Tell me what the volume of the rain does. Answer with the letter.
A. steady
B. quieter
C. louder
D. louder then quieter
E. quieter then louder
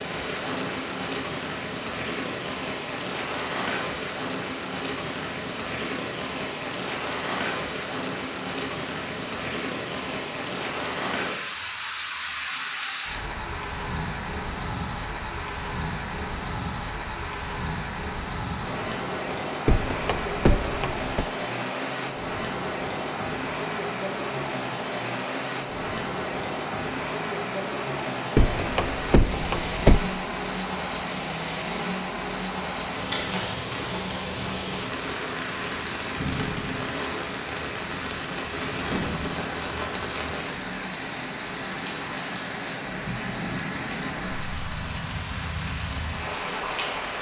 A.